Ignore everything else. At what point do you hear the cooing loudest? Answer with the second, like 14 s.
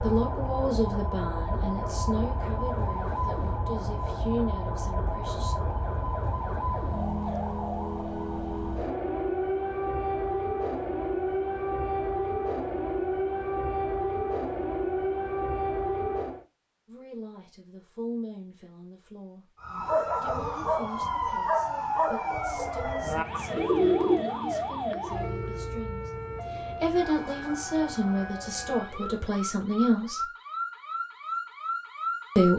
24 s.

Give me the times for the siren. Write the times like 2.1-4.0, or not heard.
0.0-16.4, 19.6-32.5.